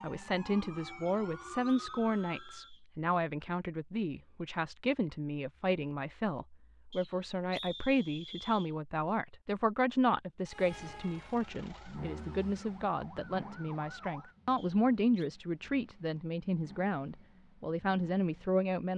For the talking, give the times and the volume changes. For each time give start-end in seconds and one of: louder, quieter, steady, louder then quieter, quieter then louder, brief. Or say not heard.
0.0-18.9 steady.